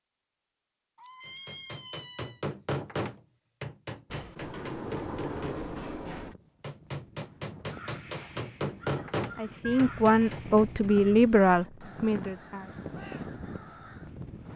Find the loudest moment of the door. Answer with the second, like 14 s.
5 s.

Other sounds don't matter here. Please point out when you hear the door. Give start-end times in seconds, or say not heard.
4.1-6.3.